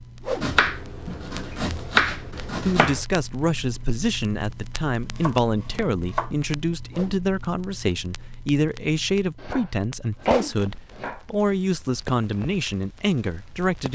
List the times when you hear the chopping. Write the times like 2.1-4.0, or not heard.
0.4-3.0, 5.0-6.3, 9.3-11.2.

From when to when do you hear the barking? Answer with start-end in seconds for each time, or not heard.
not heard.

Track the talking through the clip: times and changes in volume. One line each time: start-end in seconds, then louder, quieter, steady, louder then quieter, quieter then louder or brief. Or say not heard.
2.5-13.8 steady.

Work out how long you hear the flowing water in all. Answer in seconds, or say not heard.
not heard.